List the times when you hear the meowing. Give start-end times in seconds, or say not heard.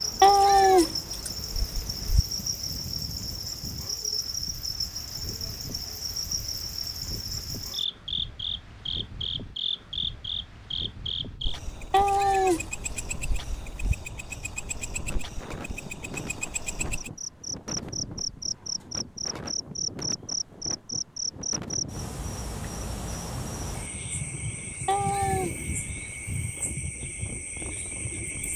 0.2-2.2, 11.9-13.9, 24.9-25.5.